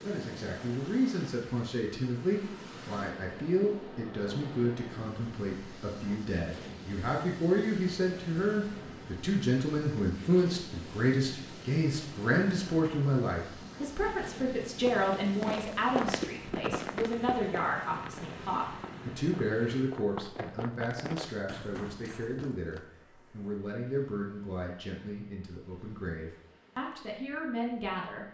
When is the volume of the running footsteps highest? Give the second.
16 s.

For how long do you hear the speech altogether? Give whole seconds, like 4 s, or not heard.
28 s.